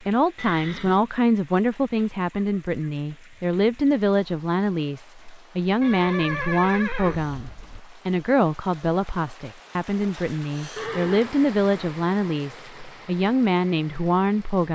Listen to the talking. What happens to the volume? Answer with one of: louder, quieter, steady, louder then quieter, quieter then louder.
steady.